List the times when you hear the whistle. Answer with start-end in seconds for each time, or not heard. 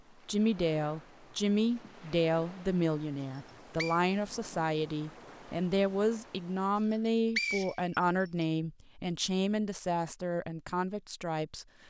3.2-4.0, 6.9-8.4.